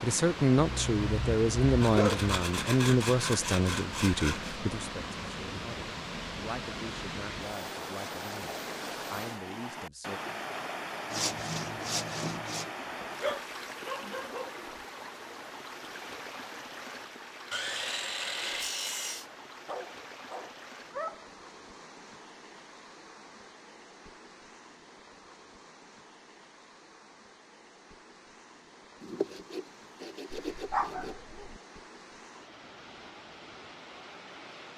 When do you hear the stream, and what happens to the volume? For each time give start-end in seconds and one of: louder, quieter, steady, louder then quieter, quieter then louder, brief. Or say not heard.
0.0-34.7 quieter.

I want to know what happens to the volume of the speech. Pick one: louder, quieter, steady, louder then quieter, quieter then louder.
quieter.